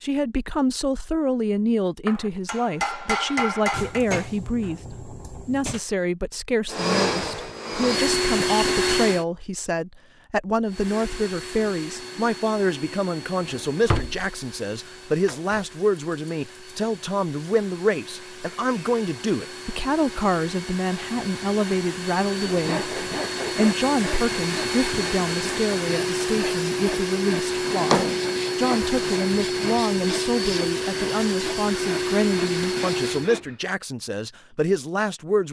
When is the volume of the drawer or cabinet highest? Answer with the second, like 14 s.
28 s.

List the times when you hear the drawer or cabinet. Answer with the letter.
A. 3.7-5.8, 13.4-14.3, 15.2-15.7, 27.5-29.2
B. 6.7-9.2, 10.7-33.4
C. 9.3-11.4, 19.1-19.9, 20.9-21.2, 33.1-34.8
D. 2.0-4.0
A.